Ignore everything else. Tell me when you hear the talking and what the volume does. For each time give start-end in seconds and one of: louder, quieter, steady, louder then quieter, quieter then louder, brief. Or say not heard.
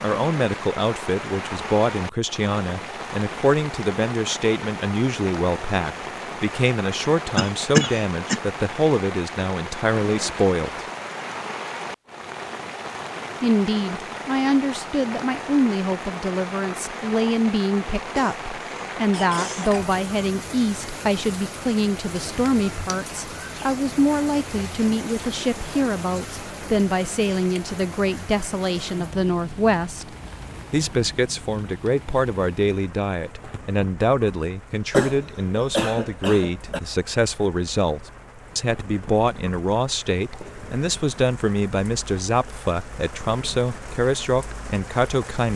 0.0-10.8 steady
13.4-45.5 steady.